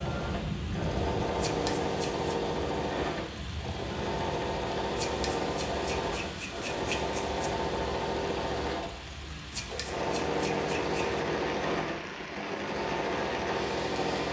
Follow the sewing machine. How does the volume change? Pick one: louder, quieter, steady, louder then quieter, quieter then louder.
steady.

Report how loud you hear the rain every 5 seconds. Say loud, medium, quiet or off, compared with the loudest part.
loud, medium, loud.